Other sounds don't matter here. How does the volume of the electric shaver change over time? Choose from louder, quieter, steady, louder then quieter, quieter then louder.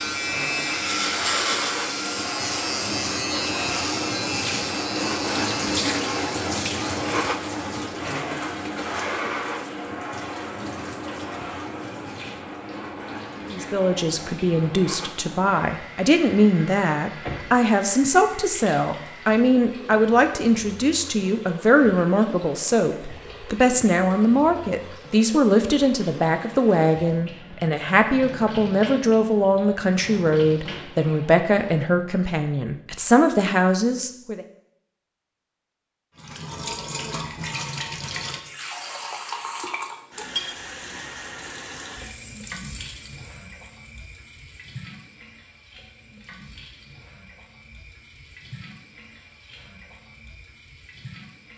quieter.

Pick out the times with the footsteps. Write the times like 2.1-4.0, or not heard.
not heard.